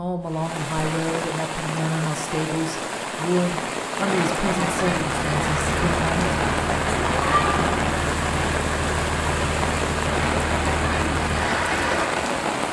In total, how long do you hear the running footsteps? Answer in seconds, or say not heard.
not heard.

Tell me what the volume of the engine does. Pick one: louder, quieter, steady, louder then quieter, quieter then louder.
steady.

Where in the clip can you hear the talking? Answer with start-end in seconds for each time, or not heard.
0.0-6.5.